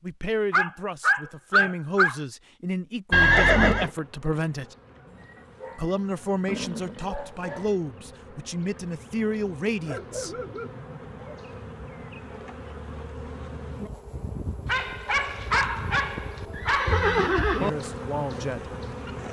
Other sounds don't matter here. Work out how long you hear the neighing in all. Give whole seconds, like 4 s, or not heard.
3 s.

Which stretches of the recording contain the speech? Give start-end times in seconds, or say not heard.
0.0-4.8, 5.8-10.3, 17.6-18.8.